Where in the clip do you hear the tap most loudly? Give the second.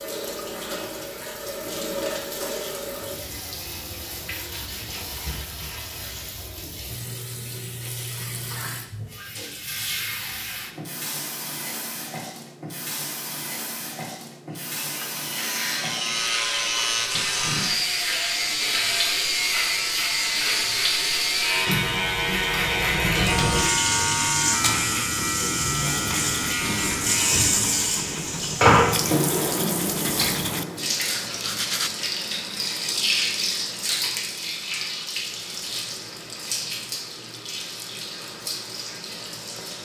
29 s.